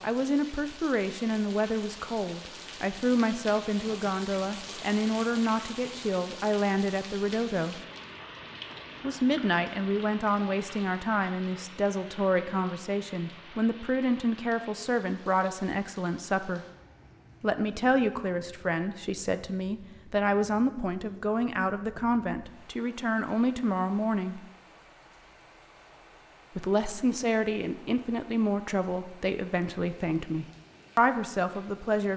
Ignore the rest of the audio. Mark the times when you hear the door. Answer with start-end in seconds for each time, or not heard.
not heard.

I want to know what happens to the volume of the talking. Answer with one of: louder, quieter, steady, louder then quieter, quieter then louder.
steady.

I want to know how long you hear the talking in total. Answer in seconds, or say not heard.
28 s.